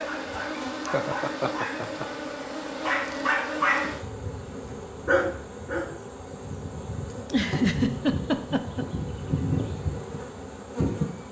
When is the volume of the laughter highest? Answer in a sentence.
The loudest moment of the laughter is at 8 seconds.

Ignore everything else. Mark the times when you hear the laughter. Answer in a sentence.
The laughter can be heard from 0.8 to 2.0 s and from 7.2 to 8.8 s.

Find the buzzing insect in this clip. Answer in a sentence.
You can hear the buzzing insect from 0.0 to 11.2 s.